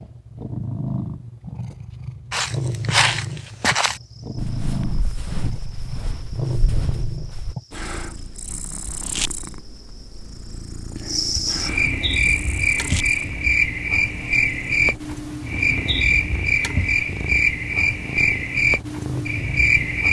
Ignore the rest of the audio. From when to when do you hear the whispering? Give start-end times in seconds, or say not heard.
not heard.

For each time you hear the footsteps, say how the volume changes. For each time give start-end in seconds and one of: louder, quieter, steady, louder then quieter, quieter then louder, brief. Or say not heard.
2.3-7.5 quieter.